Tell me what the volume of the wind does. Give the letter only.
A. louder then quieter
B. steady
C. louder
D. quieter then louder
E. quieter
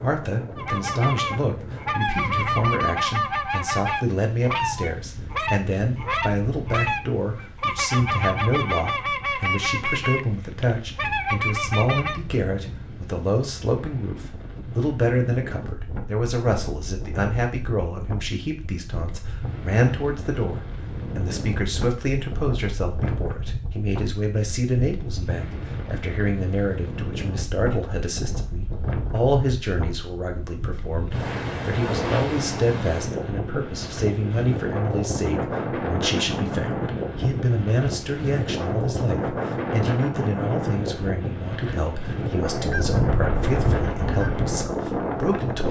C.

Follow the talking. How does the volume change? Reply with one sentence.
The loudness of the talking stays about the same.